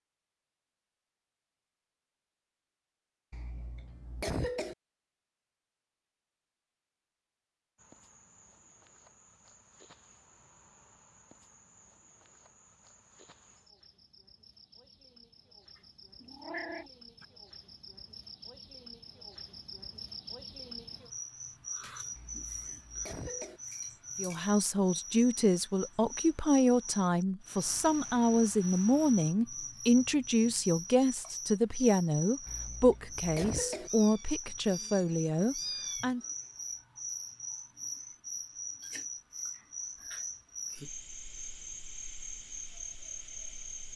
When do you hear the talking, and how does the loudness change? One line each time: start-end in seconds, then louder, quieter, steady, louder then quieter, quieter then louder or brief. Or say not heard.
24.1-36.2 steady.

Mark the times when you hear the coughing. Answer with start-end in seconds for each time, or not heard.
3.3-4.8, 22.1-23.6, 32.5-33.9.